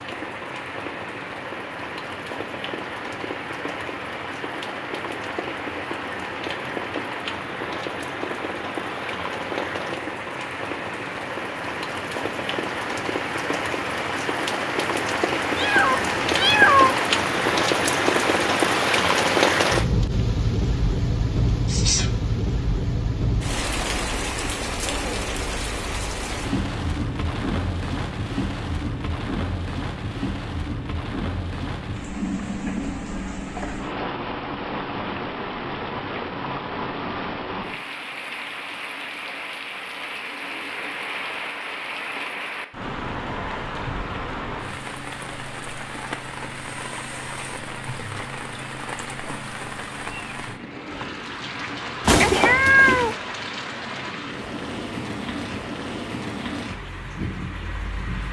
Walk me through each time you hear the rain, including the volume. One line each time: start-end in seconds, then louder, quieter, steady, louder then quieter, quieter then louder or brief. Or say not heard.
0.0-58.2 louder then quieter.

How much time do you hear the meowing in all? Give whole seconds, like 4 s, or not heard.
3 s.